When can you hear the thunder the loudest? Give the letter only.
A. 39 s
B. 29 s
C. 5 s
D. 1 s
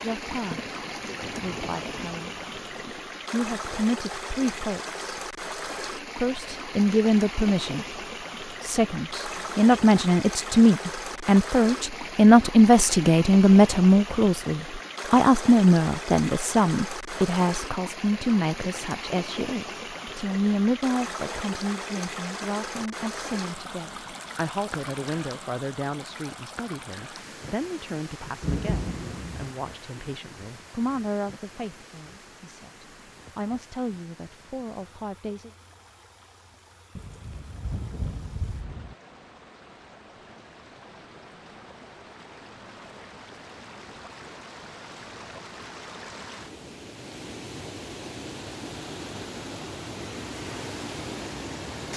B.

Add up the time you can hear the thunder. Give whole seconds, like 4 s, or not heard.
6 s.